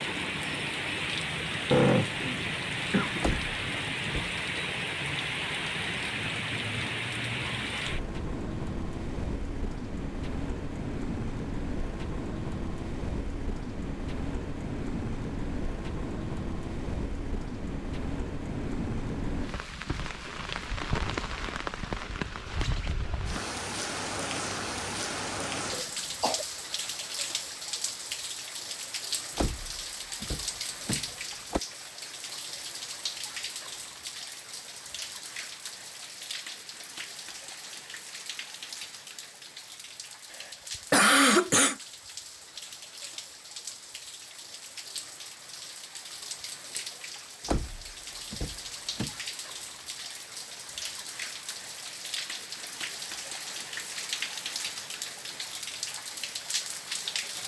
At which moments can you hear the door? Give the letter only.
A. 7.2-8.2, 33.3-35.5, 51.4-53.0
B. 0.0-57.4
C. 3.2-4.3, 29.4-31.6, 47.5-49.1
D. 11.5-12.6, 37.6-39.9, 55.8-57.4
C.